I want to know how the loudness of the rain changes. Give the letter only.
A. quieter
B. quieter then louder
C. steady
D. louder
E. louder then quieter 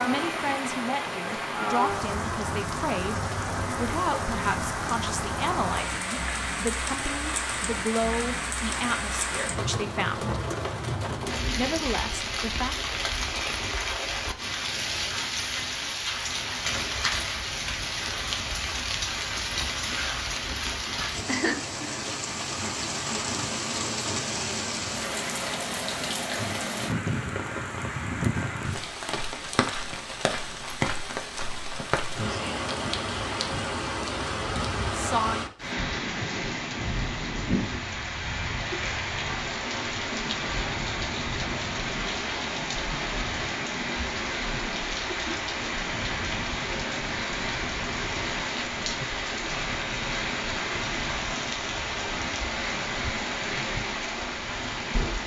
C.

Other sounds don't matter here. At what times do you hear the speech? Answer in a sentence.
The speech can be heard from 0.0 to 10.3 s, from 11.6 to 12.8 s and from 34.9 to 35.5 s.